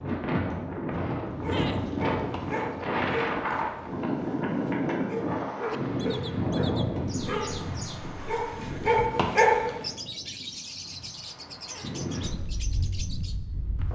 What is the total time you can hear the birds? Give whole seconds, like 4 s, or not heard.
8 s.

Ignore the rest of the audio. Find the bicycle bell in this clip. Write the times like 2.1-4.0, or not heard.
not heard.